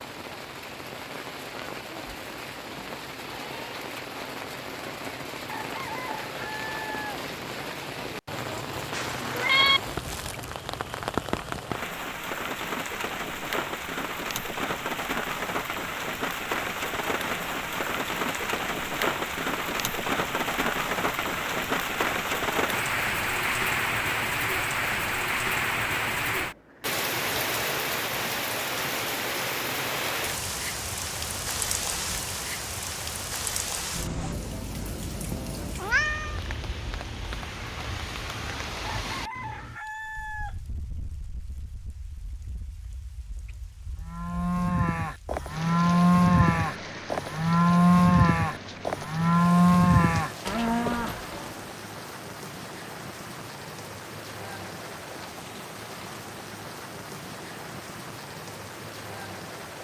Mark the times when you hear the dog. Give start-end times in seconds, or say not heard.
not heard.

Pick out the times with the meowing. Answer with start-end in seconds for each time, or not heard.
8.9-9.8, 35.8-36.4.